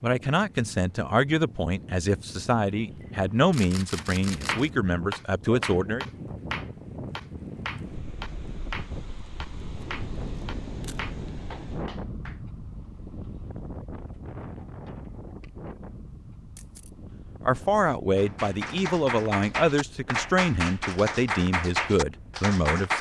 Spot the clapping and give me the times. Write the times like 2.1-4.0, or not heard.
4.0-12.3, 18.1-22.9.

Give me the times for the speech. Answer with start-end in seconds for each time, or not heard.
0.0-6.0, 17.4-22.9.